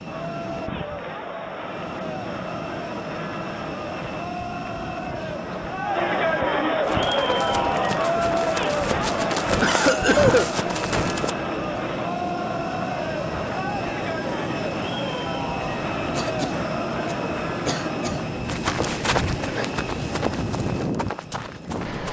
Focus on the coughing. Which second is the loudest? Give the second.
10 s.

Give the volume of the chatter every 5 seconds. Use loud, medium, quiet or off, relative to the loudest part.
medium, loud, medium, medium, off.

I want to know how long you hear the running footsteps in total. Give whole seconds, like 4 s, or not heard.
8 s.